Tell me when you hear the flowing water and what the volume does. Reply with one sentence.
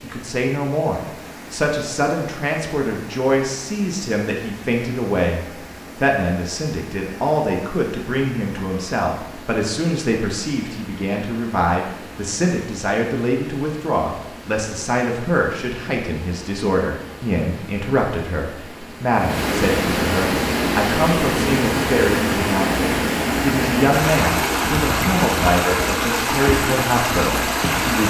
The flowing water can be heard from 0.0 to 28.0 s, getting louder.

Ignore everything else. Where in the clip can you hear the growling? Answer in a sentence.
The growling can't be heard in this clip.